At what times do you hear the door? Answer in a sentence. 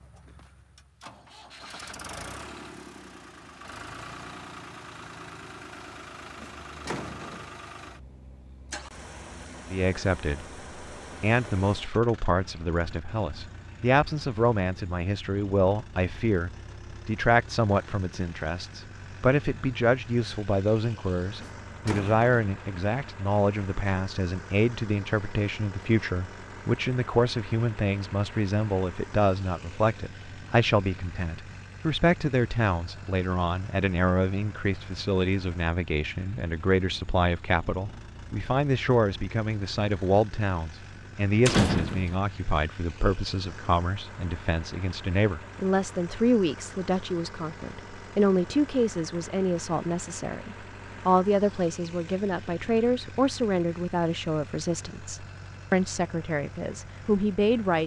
The door can be heard from 6.3 to 7.5 s, from 21.4 to 22.4 s and from 41.5 to 42.1 s.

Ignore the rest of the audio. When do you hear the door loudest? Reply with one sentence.
The volume of the door peaks at 42 seconds.